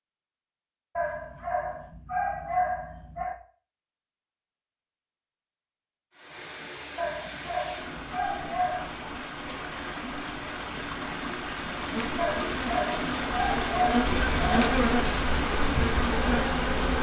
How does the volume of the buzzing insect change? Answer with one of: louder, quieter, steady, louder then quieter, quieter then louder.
louder.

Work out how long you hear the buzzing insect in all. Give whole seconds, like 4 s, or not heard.
5 s.